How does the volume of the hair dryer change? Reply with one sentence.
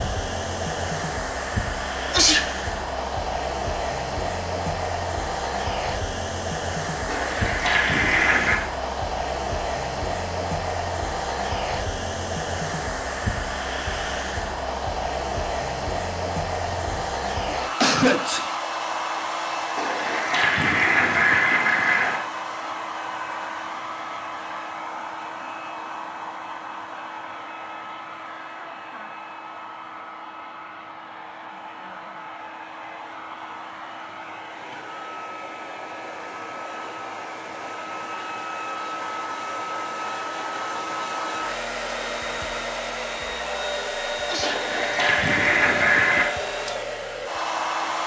The volume of the hair dryer goes down, then up.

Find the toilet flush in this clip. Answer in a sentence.
The toilet flush can be heard from 7.0 to 8.6 s, from 19.8 to 22.2 s and from 44.4 to 46.3 s.